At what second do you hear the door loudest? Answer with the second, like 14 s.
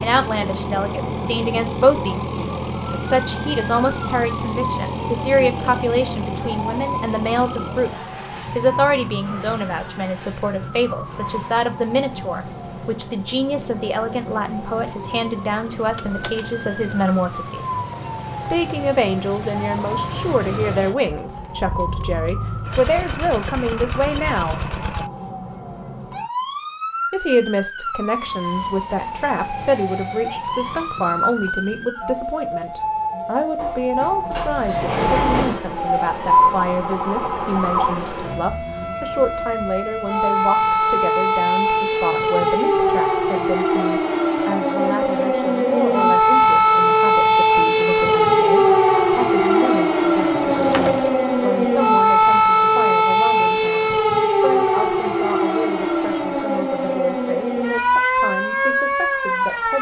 35 s.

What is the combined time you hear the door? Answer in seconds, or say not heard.
4 s.